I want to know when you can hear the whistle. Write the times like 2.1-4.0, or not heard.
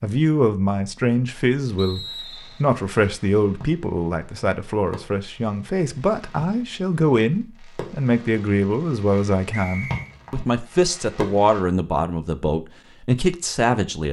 1.8-2.6, 9.5-10.2.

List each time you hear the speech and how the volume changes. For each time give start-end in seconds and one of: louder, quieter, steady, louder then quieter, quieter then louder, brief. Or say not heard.
0.0-2.0 brief
2.6-14.0 steady.